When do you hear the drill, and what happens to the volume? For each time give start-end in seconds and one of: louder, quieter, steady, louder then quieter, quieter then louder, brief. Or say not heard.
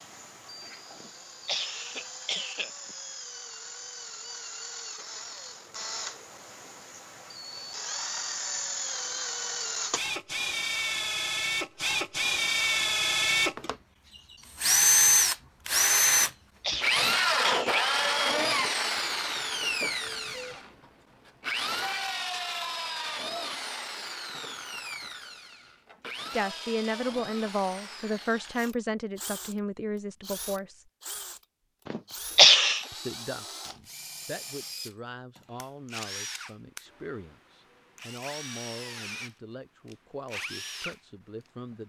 0.0-41.8 louder then quieter.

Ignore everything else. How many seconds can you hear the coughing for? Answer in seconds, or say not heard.
5 s.